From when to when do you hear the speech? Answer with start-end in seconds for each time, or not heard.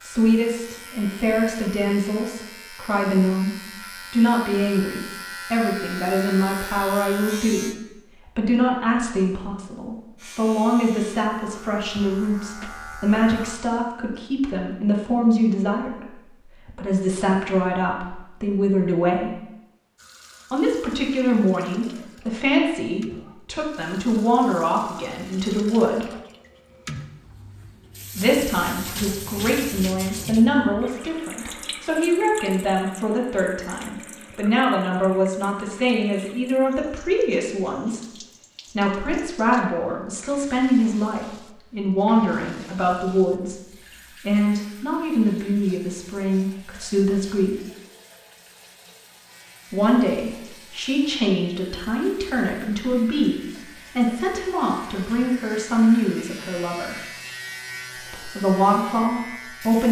0.0-19.4, 20.5-26.1, 28.1-38.1, 38.7-47.5, 49.7-57.0, 58.0-59.8.